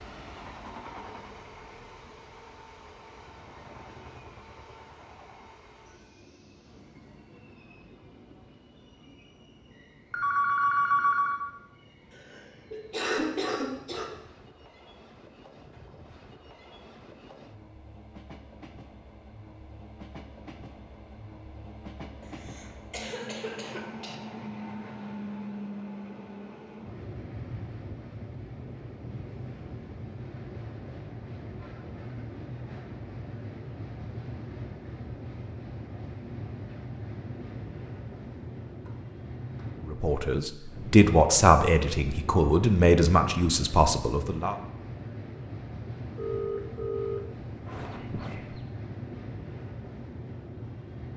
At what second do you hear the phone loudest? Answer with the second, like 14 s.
11 s.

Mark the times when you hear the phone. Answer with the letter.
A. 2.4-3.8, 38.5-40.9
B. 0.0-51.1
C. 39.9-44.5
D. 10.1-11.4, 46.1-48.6
D.